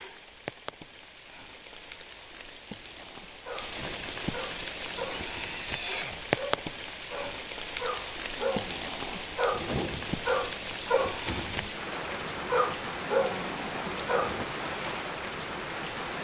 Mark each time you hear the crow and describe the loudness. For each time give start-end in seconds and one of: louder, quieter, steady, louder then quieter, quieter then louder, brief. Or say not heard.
not heard.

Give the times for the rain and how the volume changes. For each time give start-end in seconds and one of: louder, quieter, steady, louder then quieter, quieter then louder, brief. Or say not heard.
0.0-16.1 louder.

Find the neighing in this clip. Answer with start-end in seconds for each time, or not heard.
4.9-6.2.